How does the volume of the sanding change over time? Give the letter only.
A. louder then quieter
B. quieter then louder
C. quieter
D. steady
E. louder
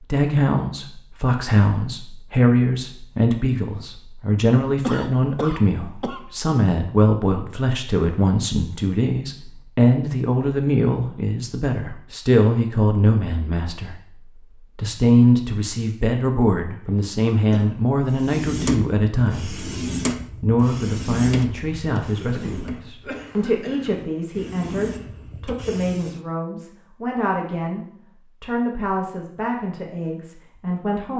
B.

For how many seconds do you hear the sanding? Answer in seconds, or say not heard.
8 s.